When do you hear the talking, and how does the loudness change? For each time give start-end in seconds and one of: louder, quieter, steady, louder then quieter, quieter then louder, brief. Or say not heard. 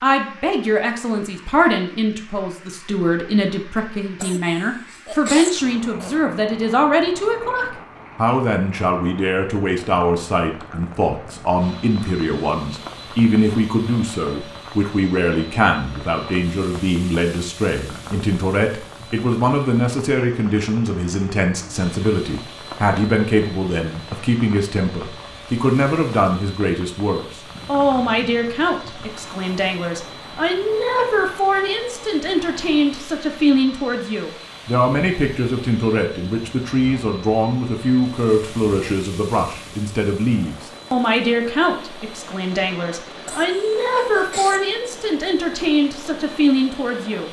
0.0-47.2 steady.